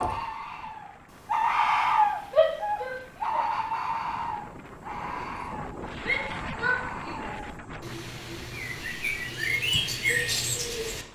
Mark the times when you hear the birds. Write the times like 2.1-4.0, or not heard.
0.0-11.1.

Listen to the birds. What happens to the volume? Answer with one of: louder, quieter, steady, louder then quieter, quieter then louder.
quieter then louder.